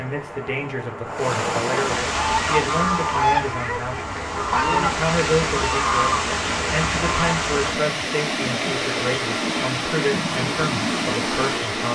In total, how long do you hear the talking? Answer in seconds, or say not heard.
12 s.